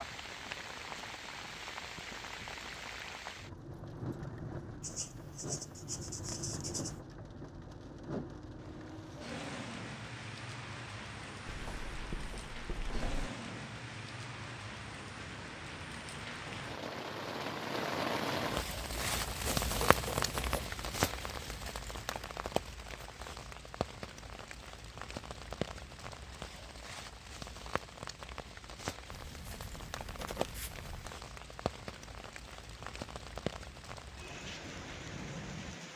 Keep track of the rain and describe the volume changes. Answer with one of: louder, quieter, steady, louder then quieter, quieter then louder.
louder then quieter.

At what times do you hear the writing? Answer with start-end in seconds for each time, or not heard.
4.8-7.0, 11.4-13.2, 18.9-20.6, 29.1-31.2.